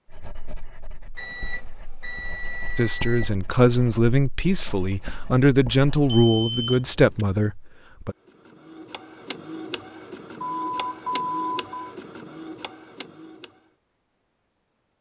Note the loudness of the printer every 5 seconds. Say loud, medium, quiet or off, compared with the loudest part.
off, loud, loud.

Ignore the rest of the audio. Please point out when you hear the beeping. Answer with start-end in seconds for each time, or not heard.
1.1-3.3, 6.0-7.2, 10.4-11.8.